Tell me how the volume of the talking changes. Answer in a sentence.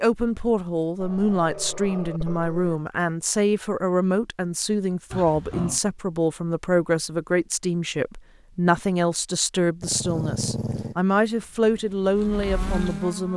The loudness of the talking stays about the same.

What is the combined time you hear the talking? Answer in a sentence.
You can hear the talking for 13 seconds altogether.